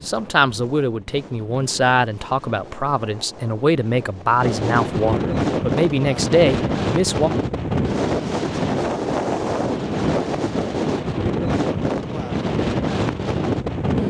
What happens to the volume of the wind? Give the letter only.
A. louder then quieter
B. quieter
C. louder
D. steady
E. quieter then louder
C.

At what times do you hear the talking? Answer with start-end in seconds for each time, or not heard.
0.1-7.3.